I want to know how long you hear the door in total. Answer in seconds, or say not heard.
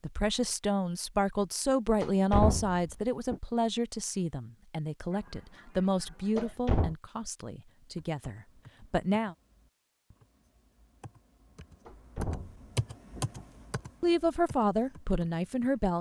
4 s.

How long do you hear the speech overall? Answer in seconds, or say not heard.
11 s.